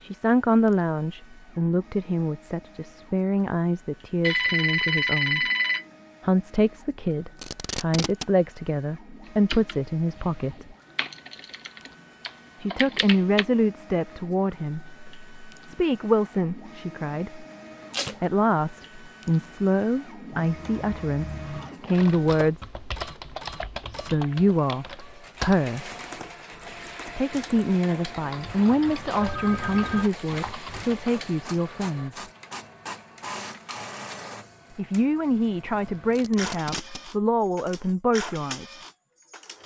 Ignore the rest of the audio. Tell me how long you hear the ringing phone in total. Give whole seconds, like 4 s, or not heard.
3 s.